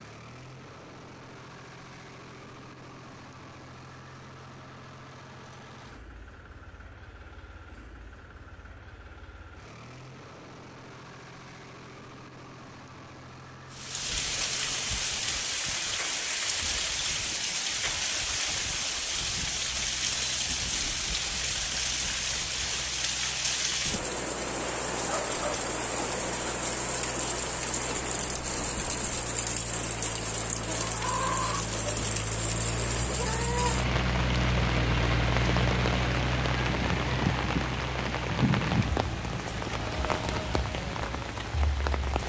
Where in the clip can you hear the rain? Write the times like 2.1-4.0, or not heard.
13.7-42.2.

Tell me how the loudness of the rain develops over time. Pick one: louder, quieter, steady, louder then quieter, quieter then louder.
steady.